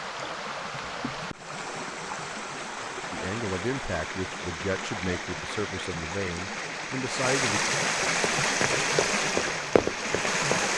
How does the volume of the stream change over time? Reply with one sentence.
The volume of the stream goes up.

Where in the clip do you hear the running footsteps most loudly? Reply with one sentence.
The volume of the running footsteps peaks at 10 seconds.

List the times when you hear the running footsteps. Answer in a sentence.
The running footsteps can be heard from 8.2 to 10.7 s.